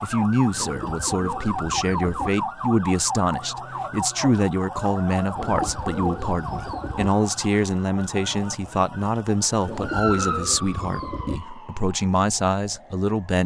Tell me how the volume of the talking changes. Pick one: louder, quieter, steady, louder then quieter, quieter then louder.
steady.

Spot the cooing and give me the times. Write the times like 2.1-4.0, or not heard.
0.6-2.3, 5.3-7.1, 9.7-11.4.